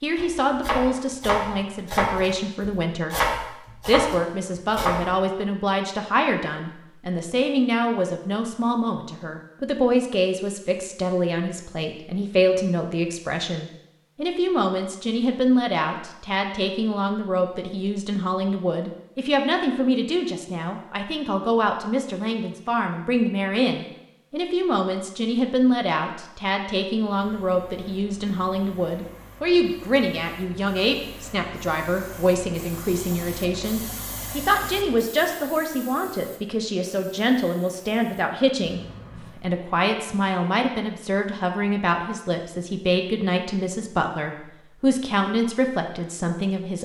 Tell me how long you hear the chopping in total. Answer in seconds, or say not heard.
5 s.